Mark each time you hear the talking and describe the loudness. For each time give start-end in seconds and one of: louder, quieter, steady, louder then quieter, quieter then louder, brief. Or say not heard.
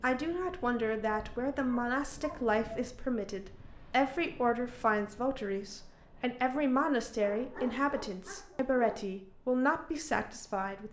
0.0-10.8 steady.